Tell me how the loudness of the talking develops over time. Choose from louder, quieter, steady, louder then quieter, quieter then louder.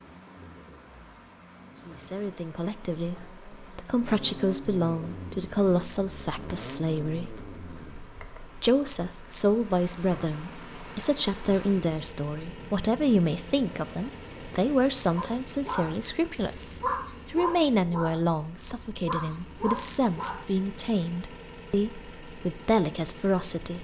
steady.